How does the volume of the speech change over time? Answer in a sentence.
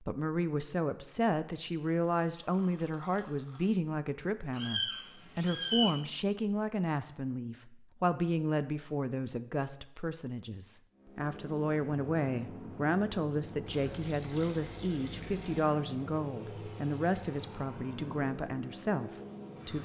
The volume of the speech stays about the same.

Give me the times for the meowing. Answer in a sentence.
The meowing can be heard from 4.5 to 6.0 s.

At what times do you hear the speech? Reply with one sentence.
The speech can be heard from 0.0 to 19.8 s.